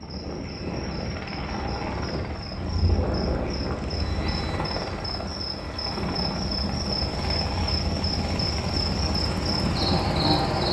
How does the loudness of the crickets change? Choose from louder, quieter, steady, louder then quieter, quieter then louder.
louder.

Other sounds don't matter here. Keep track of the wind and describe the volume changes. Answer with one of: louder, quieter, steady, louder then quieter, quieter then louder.
louder.